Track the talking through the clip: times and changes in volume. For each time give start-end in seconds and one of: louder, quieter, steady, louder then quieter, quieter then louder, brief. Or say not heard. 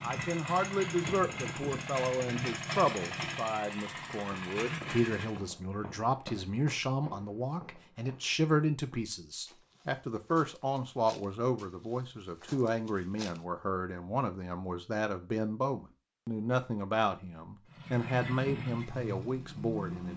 0.0-20.1 steady.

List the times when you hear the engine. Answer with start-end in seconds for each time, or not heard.
0.0-5.5, 17.7-20.1.